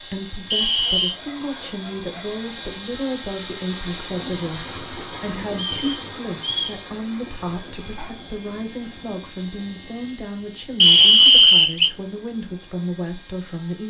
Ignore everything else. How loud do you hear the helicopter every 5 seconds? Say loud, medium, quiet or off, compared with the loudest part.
loud, medium, quiet.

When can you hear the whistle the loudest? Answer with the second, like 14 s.
11 s.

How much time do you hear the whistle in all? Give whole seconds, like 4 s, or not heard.
3 s.